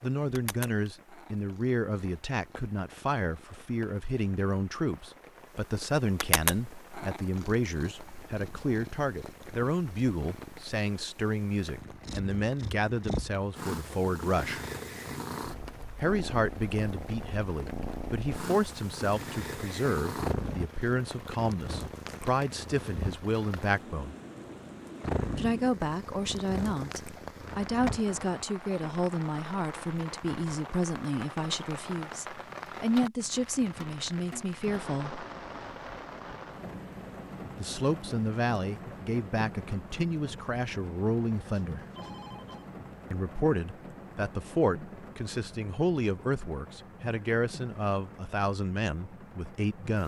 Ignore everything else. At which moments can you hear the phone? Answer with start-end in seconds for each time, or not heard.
41.5-42.7.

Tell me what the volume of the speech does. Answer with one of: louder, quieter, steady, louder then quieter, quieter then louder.
steady.